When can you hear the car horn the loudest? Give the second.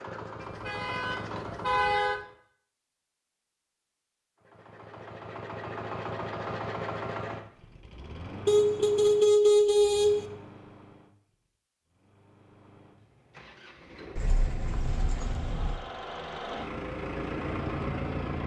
9 s.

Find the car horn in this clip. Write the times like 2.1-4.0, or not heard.
0.4-2.2, 8.4-10.3, 14.2-15.8.